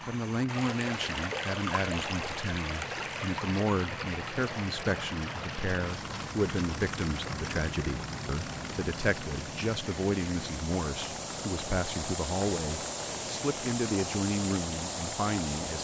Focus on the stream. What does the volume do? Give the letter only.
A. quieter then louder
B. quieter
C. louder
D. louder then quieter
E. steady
A.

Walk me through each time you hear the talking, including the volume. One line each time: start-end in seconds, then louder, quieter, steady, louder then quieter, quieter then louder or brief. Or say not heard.
0.1-15.7 steady.